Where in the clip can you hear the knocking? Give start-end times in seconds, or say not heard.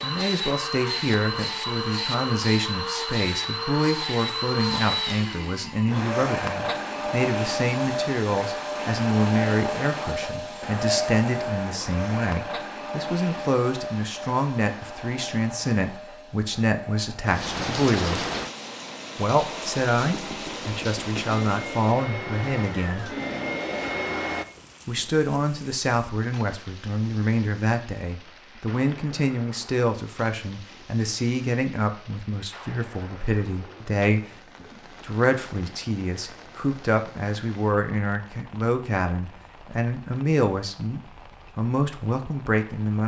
20.1-21.3.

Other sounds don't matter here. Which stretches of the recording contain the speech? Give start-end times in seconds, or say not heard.
0.0-18.2, 19.1-23.1, 24.9-43.0.